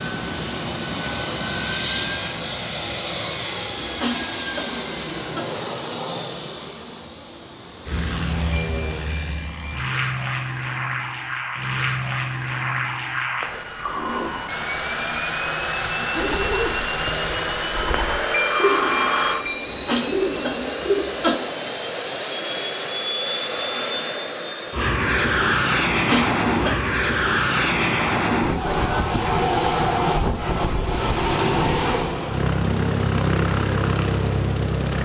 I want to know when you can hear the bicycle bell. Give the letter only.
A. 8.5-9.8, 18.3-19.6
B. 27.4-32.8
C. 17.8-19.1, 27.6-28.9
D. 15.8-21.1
A.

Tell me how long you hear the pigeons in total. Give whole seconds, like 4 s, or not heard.
5 s.